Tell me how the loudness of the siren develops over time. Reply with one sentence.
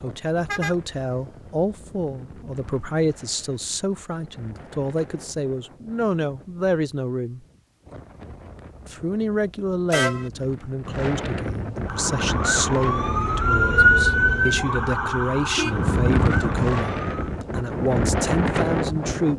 The volume of the siren goes up, then down.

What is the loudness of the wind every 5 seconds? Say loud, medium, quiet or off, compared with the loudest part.
quiet, quiet, medium, loud.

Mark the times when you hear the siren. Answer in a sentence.
The siren can be heard from 11.8 to 17.4 s.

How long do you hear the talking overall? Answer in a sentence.
You can hear the talking for 18 seconds altogether.